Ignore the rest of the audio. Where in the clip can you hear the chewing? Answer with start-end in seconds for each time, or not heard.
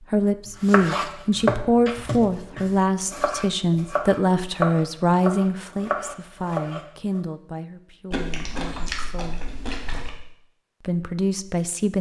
8.1-10.1.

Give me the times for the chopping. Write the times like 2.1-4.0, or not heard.
0.5-7.2.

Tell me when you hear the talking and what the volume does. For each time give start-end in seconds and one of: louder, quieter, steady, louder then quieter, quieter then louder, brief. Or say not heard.
0.1-9.5 quieter
10.8-11.9 brief.